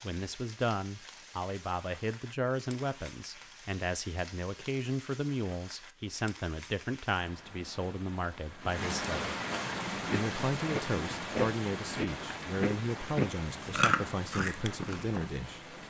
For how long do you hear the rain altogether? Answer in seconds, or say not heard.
16 s.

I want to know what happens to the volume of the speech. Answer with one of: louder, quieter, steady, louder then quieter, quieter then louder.
steady.